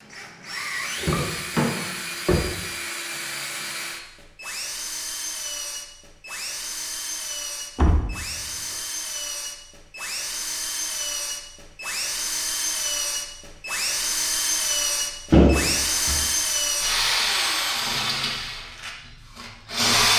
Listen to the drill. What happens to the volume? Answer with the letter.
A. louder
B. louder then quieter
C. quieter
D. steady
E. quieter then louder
A.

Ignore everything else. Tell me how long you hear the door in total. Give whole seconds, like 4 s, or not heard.
3 s.